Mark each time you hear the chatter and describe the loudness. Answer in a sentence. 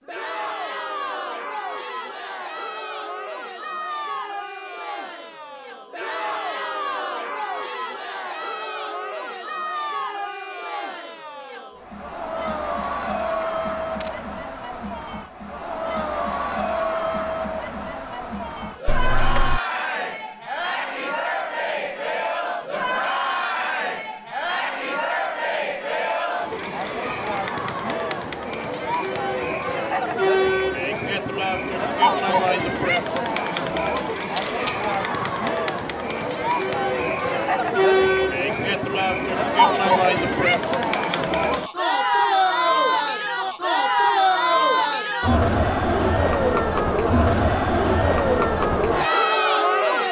The chatter can be heard from 0.0 to 50.0 s, getting louder.